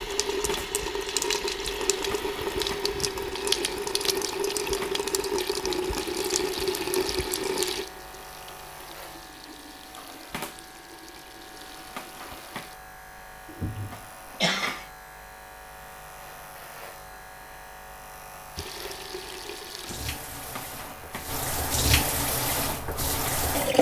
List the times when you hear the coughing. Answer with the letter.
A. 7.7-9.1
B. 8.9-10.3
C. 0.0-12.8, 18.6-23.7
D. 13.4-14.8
D.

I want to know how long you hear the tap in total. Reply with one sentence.
The tap can be heard for 18 seconds in total.